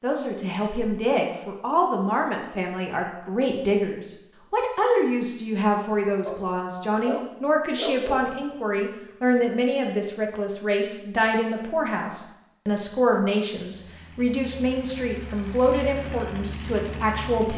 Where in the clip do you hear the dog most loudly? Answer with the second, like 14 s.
8 s.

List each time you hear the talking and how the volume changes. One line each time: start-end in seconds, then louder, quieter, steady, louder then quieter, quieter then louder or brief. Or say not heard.
0.0-17.5 steady.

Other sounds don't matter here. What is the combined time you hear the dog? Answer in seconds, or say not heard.
2 s.